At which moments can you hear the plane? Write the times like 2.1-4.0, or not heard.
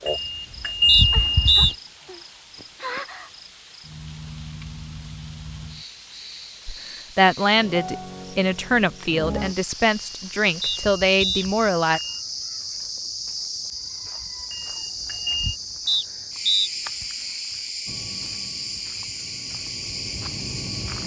17.9-21.0.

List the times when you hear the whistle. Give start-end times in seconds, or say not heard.
0.8-1.8, 10.6-11.4, 15.8-16.7.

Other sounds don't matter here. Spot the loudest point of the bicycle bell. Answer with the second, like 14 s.
1 s.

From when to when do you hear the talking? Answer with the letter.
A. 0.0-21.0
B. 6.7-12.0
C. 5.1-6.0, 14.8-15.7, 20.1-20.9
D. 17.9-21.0
B.